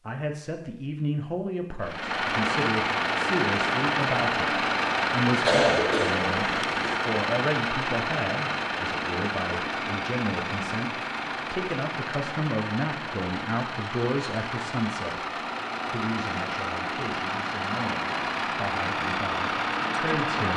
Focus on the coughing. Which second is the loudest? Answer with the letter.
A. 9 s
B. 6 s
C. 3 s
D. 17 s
B.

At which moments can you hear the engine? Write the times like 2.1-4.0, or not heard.
1.8-20.5.